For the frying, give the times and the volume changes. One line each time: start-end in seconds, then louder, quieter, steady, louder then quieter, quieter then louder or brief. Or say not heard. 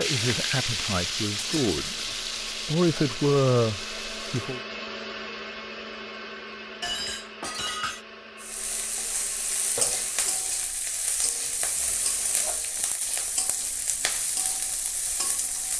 0.0-4.7 quieter
8.3-15.7 steady.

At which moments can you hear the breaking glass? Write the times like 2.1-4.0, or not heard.
1.4-1.9, 6.8-8.1.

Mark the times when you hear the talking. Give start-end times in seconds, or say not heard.
0.0-4.6.